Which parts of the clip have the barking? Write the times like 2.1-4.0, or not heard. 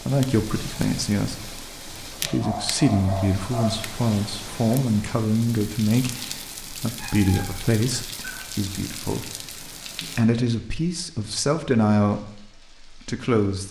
2.2-3.9, 6.8-8.4.